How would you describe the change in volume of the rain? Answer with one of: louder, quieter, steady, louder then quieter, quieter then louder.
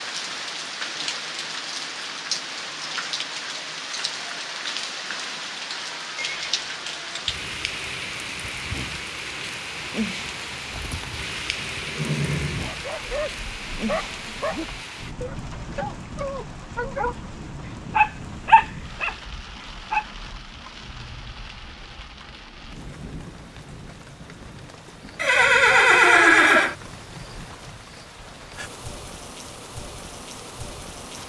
quieter.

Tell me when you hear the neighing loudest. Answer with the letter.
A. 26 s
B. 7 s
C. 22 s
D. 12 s
A.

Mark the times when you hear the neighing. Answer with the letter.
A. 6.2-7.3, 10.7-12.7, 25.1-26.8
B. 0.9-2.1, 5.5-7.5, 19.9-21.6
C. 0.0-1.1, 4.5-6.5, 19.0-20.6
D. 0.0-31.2
A.